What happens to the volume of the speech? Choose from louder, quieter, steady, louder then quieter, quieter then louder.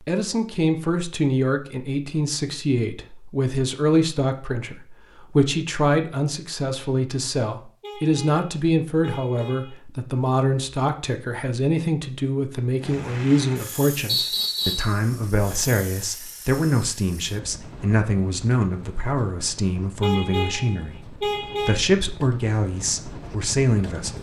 steady.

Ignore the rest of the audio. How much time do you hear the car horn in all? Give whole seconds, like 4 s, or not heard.
4 s.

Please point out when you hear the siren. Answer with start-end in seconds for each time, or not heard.
not heard.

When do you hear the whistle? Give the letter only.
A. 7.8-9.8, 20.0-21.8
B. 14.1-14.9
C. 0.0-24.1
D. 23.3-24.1
B.